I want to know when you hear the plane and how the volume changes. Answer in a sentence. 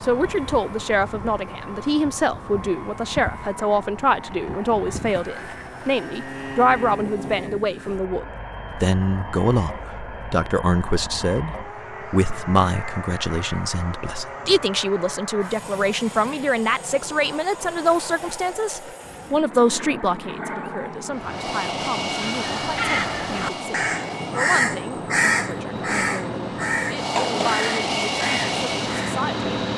You can hear the plane from 0.0 to 29.7 s, getting louder.